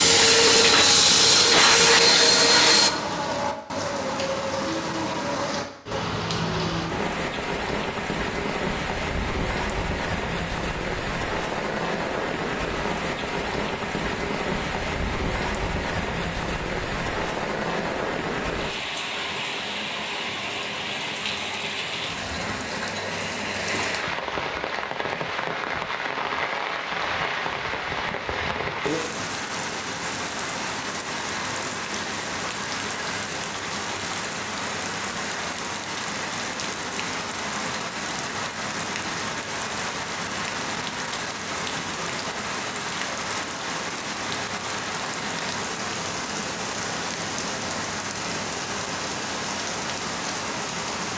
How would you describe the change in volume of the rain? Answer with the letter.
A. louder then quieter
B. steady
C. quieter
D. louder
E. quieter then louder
B.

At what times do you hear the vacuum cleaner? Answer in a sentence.
You can hear the vacuum cleaner from 0.0 to 2.9 s.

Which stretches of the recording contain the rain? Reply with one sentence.
You can hear the rain from 0.0 to 51.1 s.